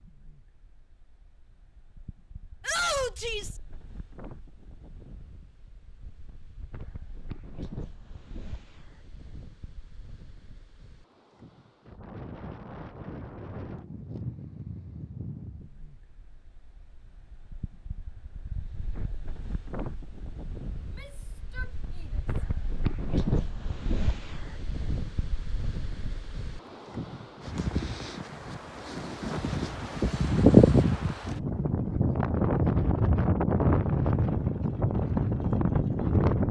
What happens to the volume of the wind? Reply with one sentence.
The loudness of the wind goes up.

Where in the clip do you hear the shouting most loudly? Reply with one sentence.
The loudest moment of the shouting is at 3 seconds.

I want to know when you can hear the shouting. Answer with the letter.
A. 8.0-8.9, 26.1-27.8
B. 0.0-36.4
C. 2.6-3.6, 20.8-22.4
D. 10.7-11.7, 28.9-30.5
C.